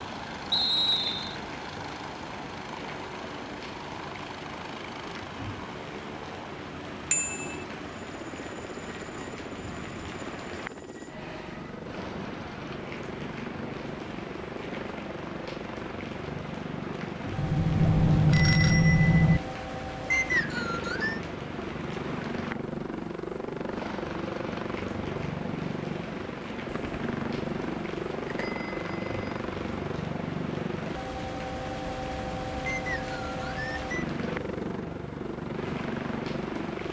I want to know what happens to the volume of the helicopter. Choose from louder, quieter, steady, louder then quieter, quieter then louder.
louder.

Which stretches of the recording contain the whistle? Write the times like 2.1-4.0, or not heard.
0.5-1.4, 20.1-21.2, 32.6-34.1.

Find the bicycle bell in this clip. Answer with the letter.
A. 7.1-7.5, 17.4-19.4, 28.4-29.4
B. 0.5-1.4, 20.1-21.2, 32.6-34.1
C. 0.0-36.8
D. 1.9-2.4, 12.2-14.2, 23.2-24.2
A.